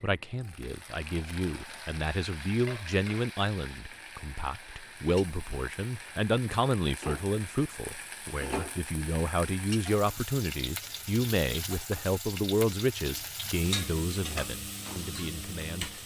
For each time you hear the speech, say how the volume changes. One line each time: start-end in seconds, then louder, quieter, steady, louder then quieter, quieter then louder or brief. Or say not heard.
0.0-16.0 steady.